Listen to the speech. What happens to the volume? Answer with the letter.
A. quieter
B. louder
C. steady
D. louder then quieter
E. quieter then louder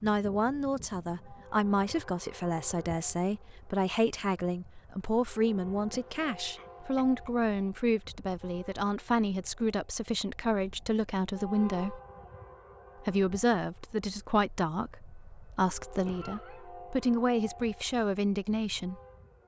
C.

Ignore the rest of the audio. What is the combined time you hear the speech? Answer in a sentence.
The speech can be heard for 18 seconds in total.